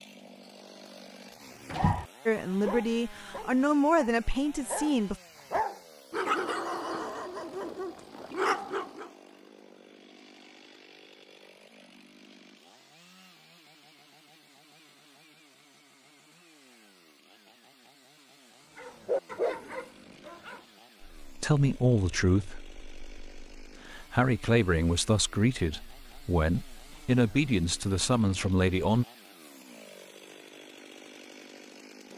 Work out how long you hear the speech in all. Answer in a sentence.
You can hear the speech for 11 seconds altogether.